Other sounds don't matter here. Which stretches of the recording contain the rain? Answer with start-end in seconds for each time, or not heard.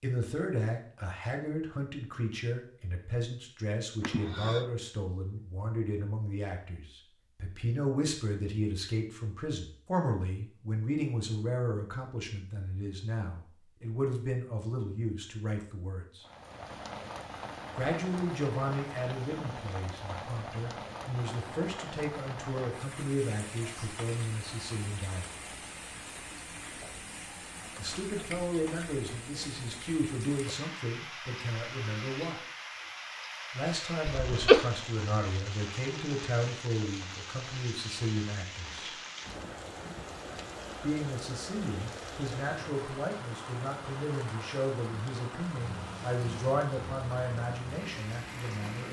16.2-48.8.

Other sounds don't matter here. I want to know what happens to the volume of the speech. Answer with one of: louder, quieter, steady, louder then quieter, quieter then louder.
steady.